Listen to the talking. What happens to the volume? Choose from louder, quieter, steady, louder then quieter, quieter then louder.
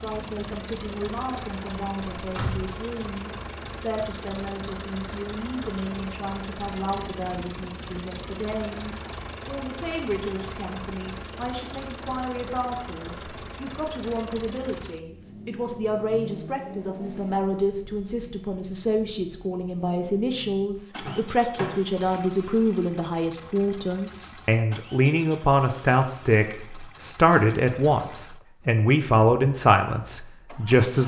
louder.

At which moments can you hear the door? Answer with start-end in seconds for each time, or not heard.
2.0-2.6, 20.9-21.8.